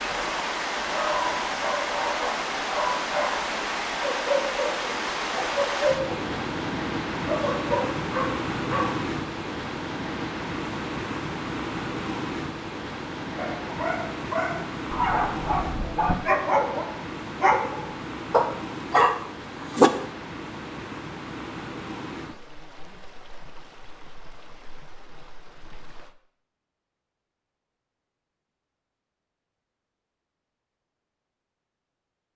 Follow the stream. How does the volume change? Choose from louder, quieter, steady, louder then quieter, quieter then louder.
quieter.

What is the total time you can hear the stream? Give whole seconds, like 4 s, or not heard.
26 s.